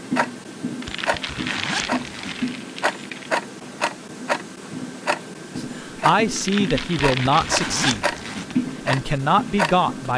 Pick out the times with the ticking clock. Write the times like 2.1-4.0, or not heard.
0.0-10.1.